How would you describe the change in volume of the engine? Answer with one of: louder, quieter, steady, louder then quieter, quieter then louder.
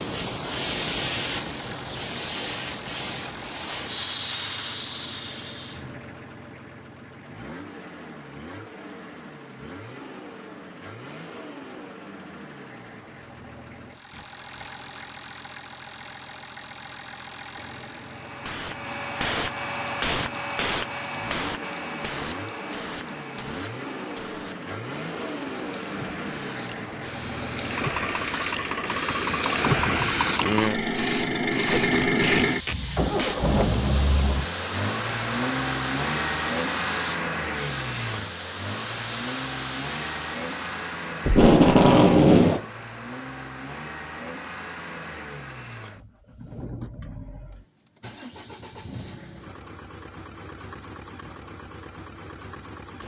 louder then quieter.